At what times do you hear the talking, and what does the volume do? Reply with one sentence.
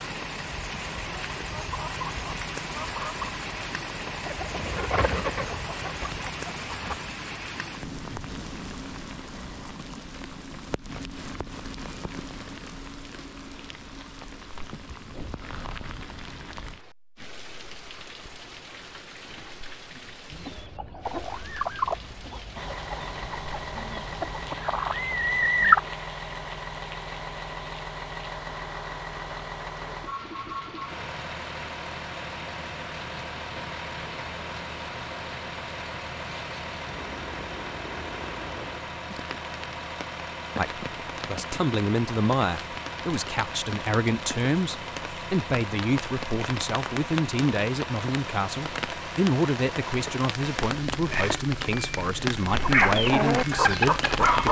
You can hear the talking from 40.5 to 54.4 s, at a steady volume.